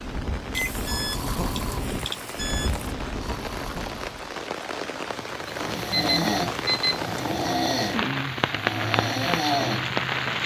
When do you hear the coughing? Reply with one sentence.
You can't hear the coughing here.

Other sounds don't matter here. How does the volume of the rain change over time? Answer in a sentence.
The volume of the rain goes up.